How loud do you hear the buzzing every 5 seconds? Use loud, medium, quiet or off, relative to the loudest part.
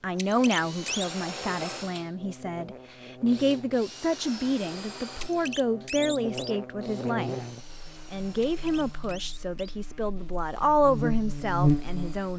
quiet, medium, loud.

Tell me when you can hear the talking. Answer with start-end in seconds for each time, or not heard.
0.0-7.3, 8.1-12.3.